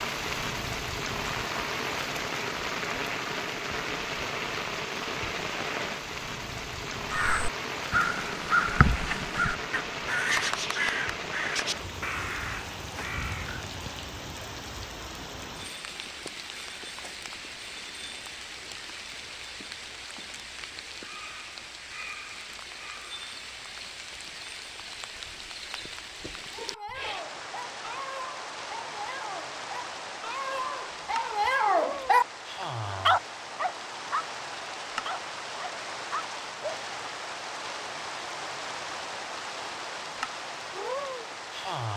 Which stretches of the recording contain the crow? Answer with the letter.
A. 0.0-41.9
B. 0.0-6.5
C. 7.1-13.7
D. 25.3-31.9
C.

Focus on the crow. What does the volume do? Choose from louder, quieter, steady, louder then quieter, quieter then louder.
quieter.